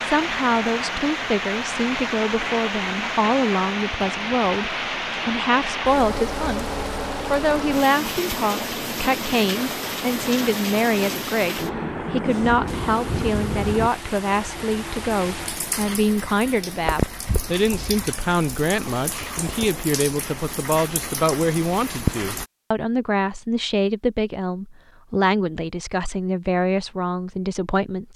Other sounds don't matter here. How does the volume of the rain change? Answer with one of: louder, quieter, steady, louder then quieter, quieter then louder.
quieter.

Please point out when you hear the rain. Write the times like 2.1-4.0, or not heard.
0.0-22.4.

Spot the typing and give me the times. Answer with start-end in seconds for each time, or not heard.
not heard.